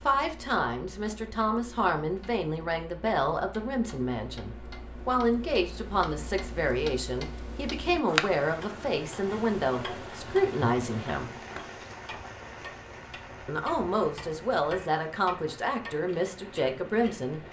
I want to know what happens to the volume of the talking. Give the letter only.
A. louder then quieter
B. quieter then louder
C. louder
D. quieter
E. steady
E.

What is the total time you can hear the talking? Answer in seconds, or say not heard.
15 s.